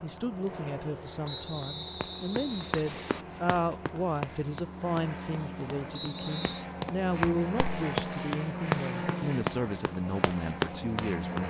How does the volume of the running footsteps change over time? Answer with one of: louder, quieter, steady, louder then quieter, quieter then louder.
louder.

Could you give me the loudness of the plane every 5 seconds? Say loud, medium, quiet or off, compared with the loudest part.
medium, loud, loud.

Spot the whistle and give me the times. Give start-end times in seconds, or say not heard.
1.2-3.2, 5.9-6.7.